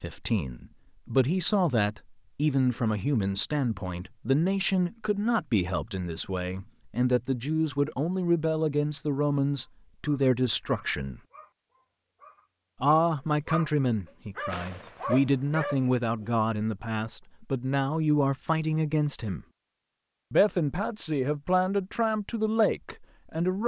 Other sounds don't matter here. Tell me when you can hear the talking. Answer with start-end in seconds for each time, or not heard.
0.0-11.2, 12.8-19.4, 20.3-23.6.